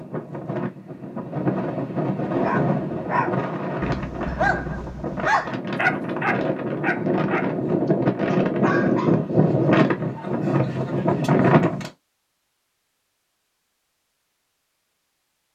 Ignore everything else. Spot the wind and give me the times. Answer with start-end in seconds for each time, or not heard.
0.0-11.9.